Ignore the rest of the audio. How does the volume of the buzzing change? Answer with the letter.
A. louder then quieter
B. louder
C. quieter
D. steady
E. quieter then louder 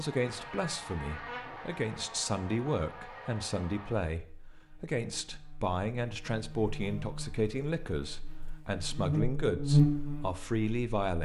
E.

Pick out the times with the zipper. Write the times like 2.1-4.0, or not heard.
not heard.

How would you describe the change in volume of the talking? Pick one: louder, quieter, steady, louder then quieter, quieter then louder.
steady.